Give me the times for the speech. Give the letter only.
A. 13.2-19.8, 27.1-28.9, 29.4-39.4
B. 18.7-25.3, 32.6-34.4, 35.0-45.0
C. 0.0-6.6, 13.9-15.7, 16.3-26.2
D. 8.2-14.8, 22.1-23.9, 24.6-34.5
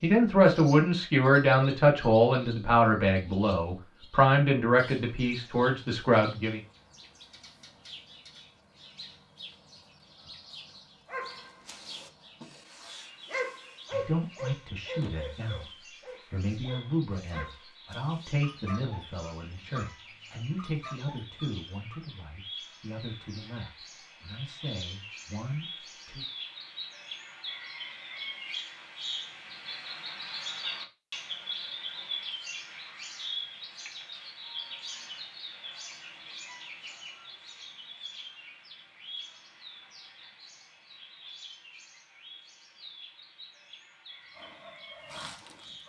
C.